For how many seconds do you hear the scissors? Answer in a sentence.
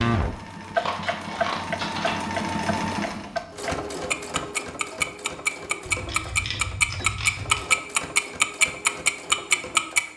You can hear the scissors for 3 seconds altogether.